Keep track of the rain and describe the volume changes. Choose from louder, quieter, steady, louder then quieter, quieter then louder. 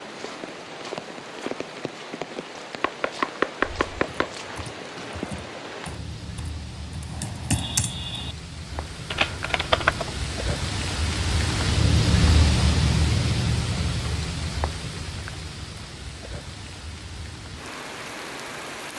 louder then quieter.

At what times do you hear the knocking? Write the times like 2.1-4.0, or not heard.
2.8-4.3.